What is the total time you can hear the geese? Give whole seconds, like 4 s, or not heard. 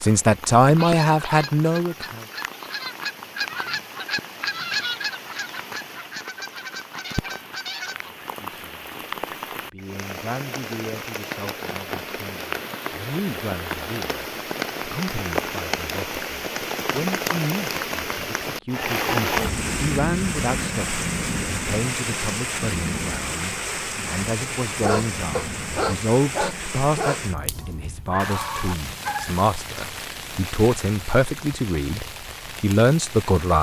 7 s.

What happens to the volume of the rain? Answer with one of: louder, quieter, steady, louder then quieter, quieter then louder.
louder then quieter.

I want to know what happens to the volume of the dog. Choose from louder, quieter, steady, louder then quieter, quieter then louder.
quieter.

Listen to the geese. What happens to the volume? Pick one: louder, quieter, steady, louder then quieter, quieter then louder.
louder then quieter.